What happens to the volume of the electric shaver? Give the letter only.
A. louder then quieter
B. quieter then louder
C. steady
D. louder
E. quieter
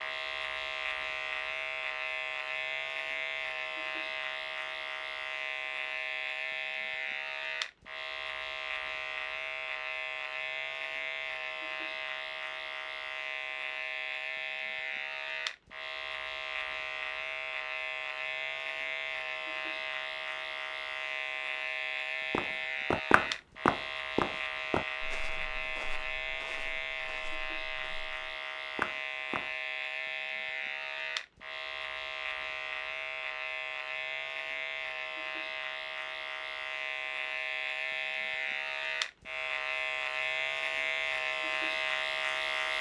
C.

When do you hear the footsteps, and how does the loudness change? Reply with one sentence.
The footsteps can be heard from 22.3 to 29.5 s, getting quieter then louder.